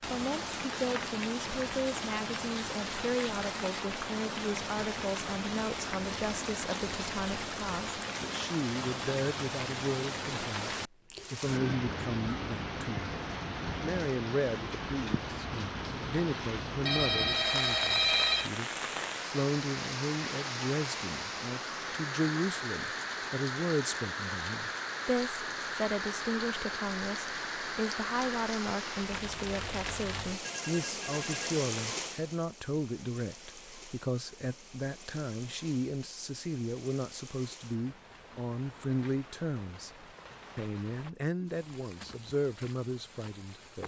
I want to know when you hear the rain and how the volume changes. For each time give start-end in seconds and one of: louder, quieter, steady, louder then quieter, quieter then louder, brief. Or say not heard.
0.0-43.8 quieter.